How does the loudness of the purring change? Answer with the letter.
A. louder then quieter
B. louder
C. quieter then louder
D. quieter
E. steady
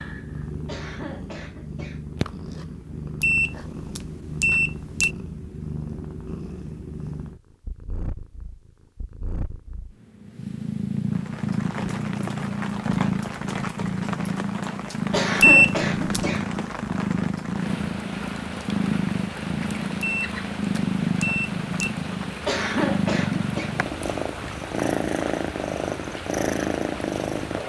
B.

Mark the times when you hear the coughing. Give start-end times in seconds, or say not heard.
0.7-2.0, 15.1-16.5, 22.4-23.8.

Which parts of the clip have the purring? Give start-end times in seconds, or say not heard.
0.0-27.6.